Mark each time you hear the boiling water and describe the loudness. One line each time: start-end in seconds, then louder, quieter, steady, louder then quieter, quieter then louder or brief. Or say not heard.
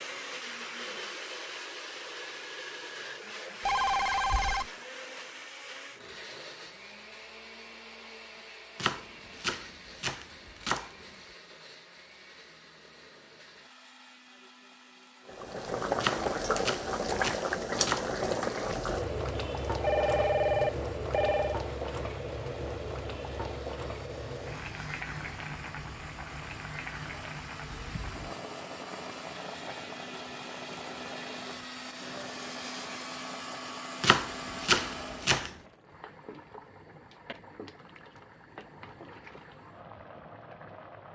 15.2-41.1 quieter.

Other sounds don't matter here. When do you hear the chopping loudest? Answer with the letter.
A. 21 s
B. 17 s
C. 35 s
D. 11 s
C.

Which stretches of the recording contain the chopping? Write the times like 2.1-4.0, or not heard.
8.8-11.1, 16.0-18.1, 34.0-35.5.